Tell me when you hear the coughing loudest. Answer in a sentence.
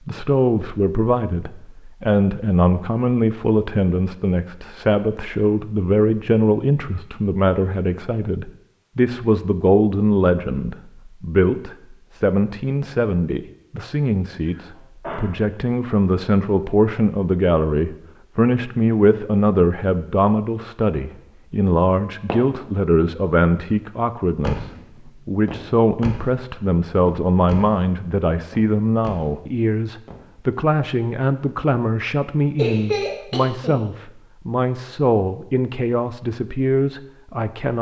The volume of the coughing peaks at 33 seconds.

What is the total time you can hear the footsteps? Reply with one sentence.
The footsteps can't be heard in this clip.